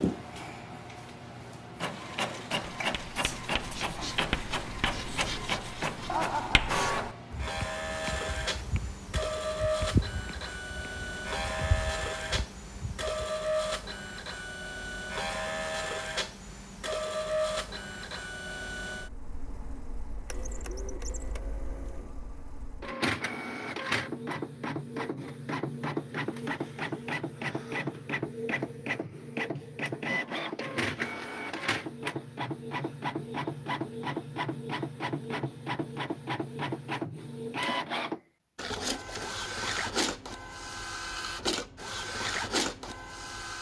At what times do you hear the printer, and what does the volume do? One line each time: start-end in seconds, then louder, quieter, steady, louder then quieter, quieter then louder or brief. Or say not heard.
0.0-43.5 steady.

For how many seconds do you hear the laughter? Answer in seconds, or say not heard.
2 s.